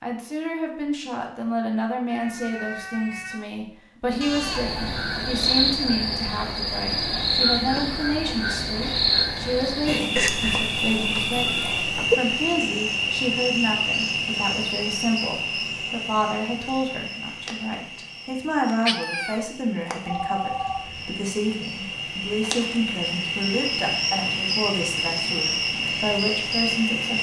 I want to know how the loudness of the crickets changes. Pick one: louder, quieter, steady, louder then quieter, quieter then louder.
quieter then louder.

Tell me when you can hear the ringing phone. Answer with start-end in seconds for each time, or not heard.
4.2-4.8, 20.1-21.1.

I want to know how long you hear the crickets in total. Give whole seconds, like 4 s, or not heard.
23 s.